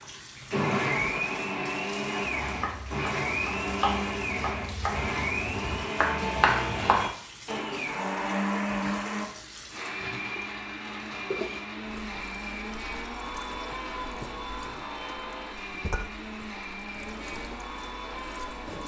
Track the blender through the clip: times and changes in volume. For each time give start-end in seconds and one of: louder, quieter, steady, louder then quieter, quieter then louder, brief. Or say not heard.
0.0-18.8 quieter.